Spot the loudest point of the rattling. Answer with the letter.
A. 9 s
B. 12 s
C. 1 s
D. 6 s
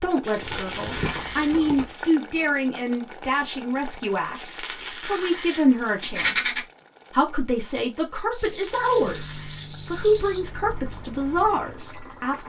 D.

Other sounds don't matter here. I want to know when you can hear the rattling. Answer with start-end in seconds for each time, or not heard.
0.3-1.9, 6.0-6.6, 8.3-10.4.